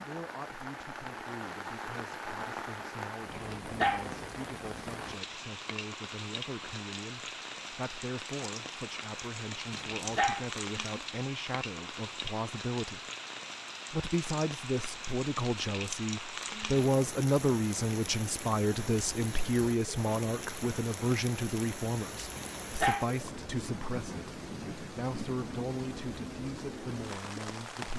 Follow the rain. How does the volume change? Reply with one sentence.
The loudness of the rain stays about the same.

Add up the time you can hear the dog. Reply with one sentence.
The dog can be heard for 2 seconds in total.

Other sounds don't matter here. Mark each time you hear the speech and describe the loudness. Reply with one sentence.
The speech can be heard from 0.0 to 13.0 s, getting louder; and from 13.9 to 27.9 s, getting quieter.